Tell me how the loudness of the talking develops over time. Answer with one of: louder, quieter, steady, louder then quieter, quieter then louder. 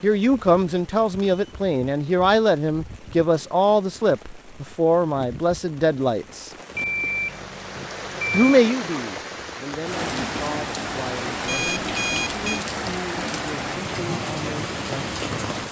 quieter.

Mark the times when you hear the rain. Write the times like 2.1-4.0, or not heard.
0.0-15.6.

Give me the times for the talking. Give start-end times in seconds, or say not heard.
0.0-6.5, 8.3-15.5.